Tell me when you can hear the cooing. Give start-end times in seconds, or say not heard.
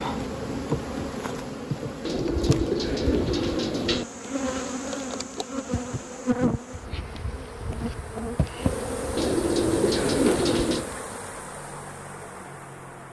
2.0-4.0, 9.2-10.8.